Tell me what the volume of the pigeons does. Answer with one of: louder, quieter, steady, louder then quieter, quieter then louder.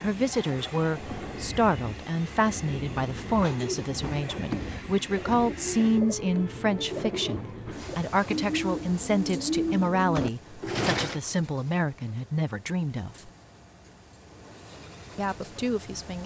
louder.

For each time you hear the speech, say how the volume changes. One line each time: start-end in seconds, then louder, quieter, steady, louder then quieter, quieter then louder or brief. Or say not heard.
0.0-13.3 steady
15.2-16.2 brief.